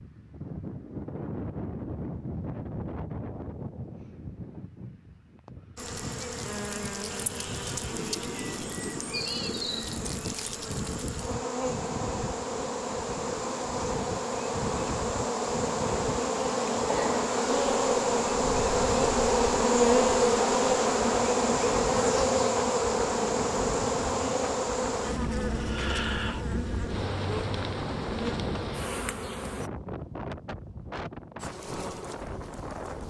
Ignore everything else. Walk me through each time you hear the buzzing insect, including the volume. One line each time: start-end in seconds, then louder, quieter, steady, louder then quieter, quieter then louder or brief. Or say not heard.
5.8-29.7 louder then quieter
31.4-33.0 brief.